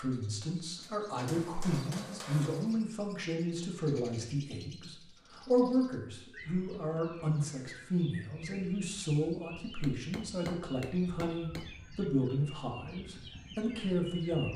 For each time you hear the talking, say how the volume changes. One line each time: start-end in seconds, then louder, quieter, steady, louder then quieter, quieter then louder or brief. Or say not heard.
0.0-14.5 steady.